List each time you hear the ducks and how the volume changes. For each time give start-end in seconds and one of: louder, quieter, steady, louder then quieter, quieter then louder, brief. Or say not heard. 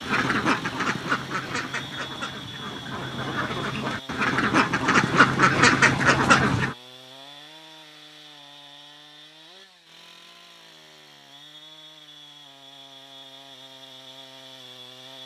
0.0-6.8 quieter then louder.